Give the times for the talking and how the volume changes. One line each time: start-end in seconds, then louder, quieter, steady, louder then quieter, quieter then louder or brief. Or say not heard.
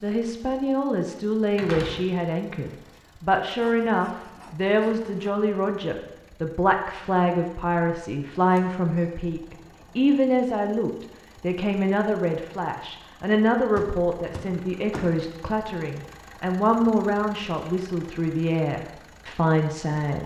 0.0-20.2 steady.